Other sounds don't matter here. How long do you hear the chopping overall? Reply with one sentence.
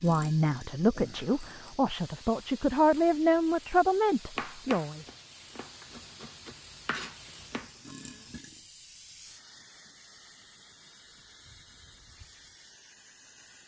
The chopping can be heard for 4 seconds in total.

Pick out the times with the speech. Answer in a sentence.
You can hear the speech from 0.0 to 5.0 s.